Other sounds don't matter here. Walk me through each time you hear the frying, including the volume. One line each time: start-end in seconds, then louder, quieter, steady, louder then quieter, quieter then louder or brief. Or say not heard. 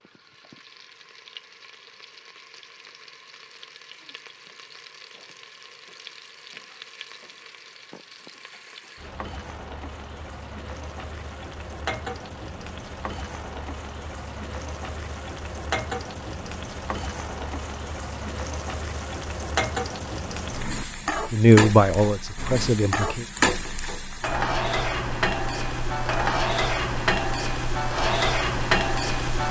0.0-29.4 louder.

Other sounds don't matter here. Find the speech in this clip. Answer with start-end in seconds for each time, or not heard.
21.3-23.2.